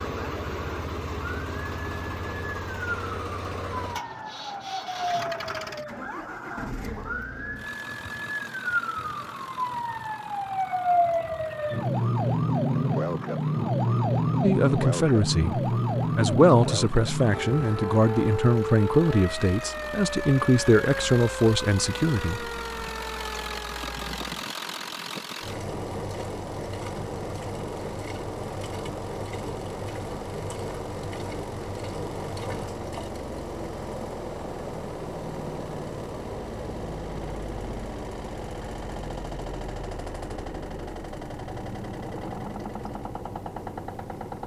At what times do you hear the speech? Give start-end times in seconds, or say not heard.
14.4-22.9.